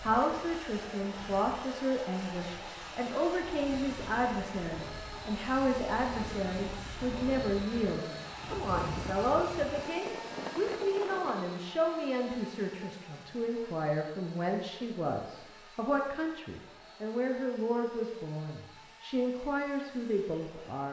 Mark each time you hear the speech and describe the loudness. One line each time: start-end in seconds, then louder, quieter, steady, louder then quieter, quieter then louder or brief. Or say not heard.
0.0-20.8 steady.